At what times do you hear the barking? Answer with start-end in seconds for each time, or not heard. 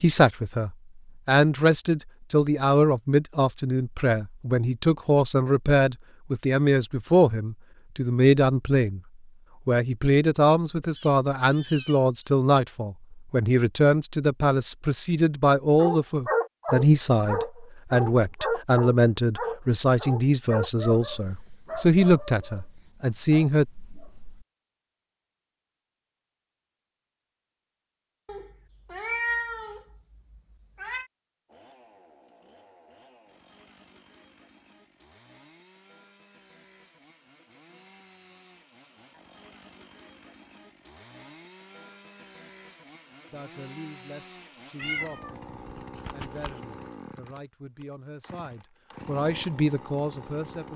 15.8-24.4.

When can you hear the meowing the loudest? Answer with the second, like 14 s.
29 s.